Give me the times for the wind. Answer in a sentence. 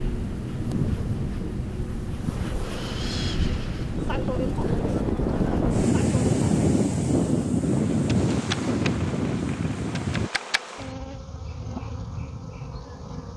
The wind can be heard from 0.0 to 10.3 s.